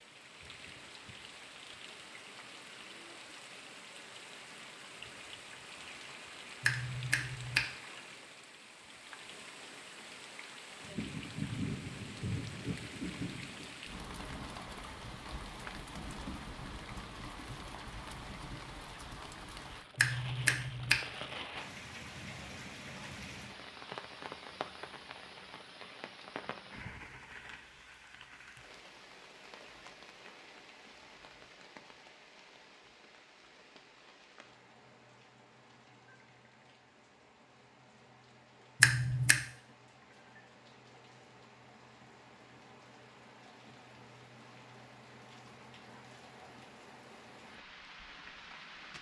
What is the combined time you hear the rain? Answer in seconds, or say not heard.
49 s.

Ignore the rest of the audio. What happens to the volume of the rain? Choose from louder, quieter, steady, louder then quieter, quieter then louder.
louder then quieter.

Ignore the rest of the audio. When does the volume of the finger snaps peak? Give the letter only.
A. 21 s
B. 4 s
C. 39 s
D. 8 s
C.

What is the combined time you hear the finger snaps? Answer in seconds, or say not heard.
3 s.